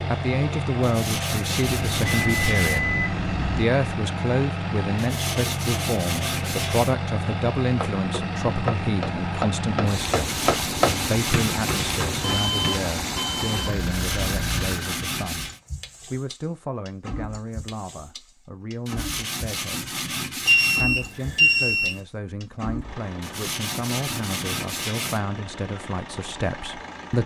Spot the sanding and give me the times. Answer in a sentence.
You can hear the sanding from 0.8 to 2.9 s, from 5.0 to 7.0 s, from 10.2 to 12.1 s, from 13.8 to 15.6 s, from 18.9 to 20.9 s and from 23.2 to 25.2 s.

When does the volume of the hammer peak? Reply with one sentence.
The loudest moment of the hammer is at 11 seconds.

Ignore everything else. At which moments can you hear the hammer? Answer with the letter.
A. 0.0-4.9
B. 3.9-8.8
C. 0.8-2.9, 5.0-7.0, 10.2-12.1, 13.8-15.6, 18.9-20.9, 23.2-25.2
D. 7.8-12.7
D.